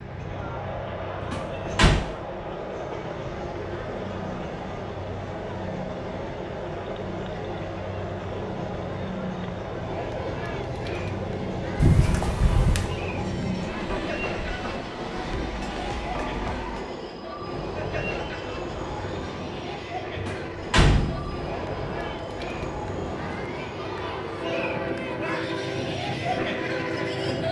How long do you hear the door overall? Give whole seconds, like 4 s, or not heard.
3 s.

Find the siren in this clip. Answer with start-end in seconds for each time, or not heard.
not heard.